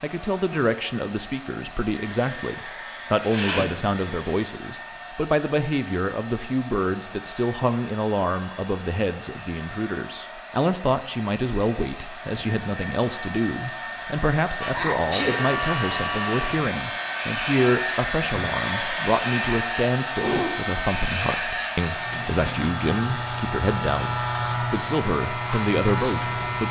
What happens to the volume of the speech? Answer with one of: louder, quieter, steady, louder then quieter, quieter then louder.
steady.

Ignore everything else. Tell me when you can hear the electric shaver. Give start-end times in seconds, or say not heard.
14.6-26.6.